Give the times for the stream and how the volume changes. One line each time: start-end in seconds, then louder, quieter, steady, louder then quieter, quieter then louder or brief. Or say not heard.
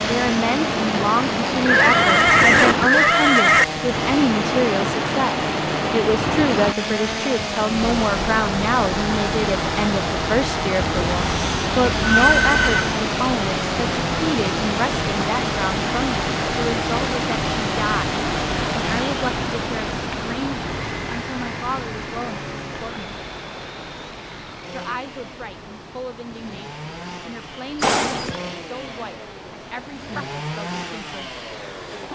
0.0-32.1 quieter.